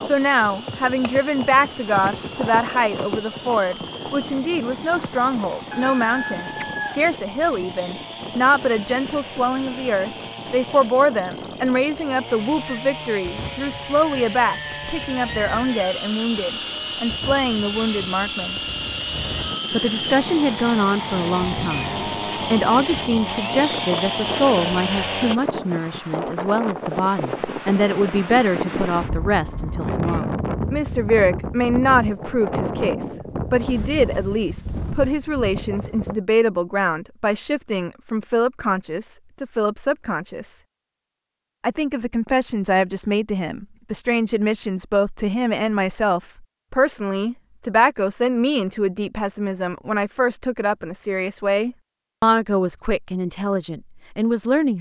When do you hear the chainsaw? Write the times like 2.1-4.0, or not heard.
0.0-25.4.